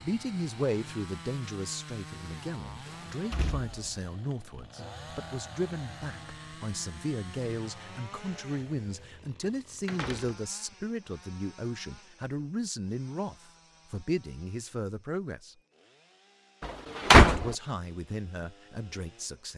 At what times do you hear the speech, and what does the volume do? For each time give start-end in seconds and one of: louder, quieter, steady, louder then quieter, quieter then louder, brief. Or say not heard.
0.0-15.6 steady
17.2-19.5 brief.